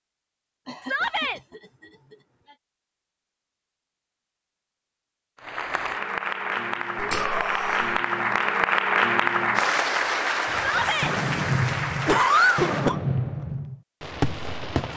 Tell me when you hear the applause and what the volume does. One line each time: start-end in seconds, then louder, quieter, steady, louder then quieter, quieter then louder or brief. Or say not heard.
5.3-12.9 louder then quieter.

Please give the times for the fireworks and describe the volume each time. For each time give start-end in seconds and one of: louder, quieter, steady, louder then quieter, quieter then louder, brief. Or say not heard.
10.4-14.9 steady.